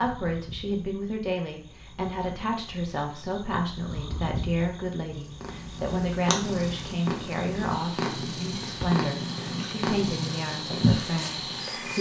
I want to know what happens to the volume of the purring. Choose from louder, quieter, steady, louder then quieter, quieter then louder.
louder.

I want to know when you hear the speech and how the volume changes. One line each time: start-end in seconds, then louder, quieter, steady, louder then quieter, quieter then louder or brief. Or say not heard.
0.0-11.9 steady.